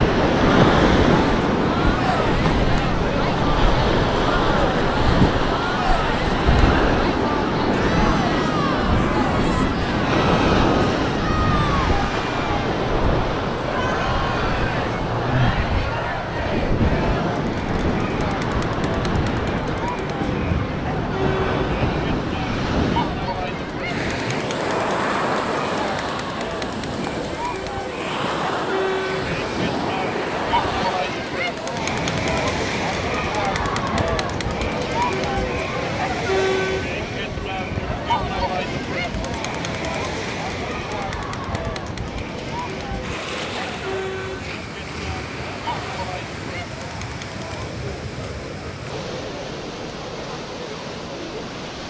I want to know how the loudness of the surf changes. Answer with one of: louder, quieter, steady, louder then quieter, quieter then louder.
quieter.